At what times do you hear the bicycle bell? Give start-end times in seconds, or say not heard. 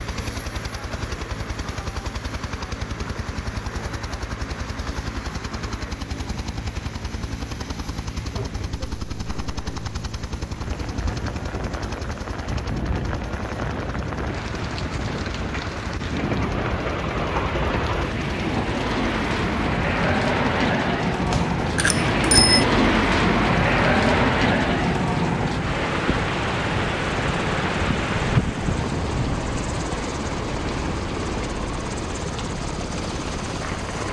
21.3-22.6.